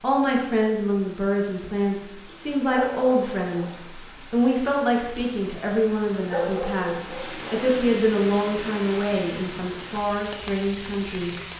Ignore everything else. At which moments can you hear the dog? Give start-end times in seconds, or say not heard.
2.2-3.7, 5.8-7.7.